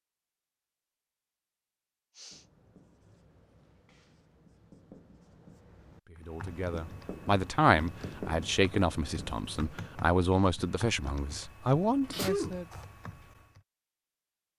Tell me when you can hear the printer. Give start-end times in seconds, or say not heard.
not heard.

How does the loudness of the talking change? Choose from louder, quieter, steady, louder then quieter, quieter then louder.
quieter then louder.